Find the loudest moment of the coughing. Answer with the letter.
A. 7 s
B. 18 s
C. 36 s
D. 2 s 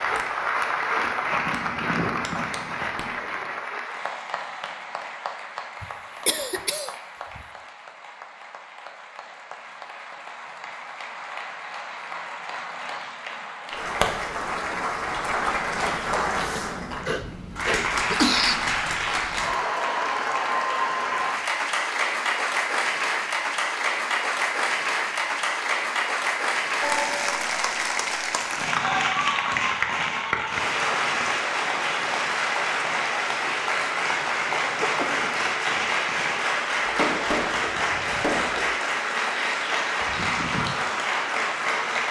B.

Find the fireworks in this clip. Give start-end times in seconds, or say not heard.
0.0-3.5, 28.6-38.8.